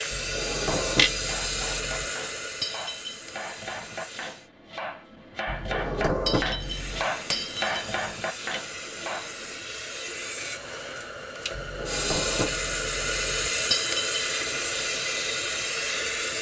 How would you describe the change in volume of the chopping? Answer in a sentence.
The loudness of the chopping goes up.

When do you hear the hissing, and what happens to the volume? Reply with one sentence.
You can hear the hissing from 0.0 to 4.5 s, getting quieter; and from 6.5 to 16.3 s, getting louder.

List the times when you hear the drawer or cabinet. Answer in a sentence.
The drawer or cabinet can be heard from 0.1 to 2.0 s, from 5.5 to 7.1 s and from 11.5 to 13.5 s.